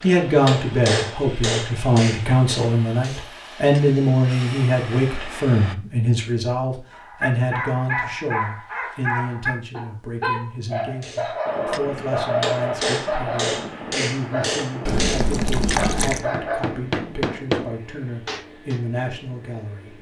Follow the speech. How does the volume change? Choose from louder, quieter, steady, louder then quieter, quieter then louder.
quieter.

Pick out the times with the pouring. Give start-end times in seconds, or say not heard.
14.8-16.2.